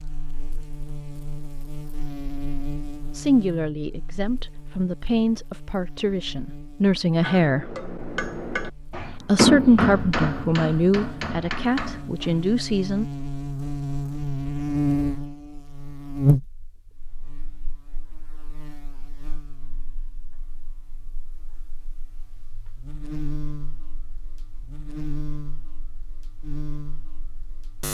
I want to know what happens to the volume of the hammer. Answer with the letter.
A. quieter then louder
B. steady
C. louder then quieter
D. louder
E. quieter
C.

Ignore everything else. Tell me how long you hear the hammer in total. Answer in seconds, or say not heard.
5 s.